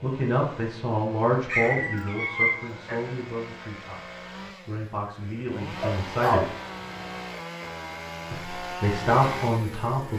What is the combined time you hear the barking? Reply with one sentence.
You can hear the barking for 3 seconds altogether.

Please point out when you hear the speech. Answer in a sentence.
The speech can be heard from 0.0 to 6.5 s and from 8.3 to 10.1 s.